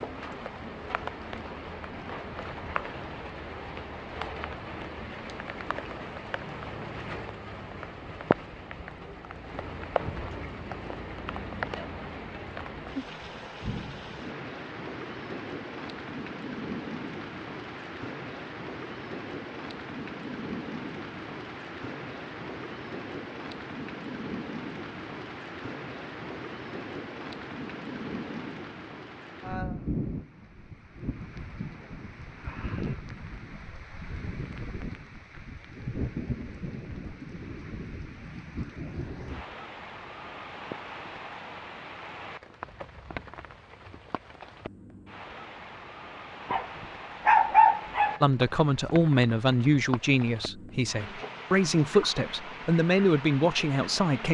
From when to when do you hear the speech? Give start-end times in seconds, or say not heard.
48.2-54.2.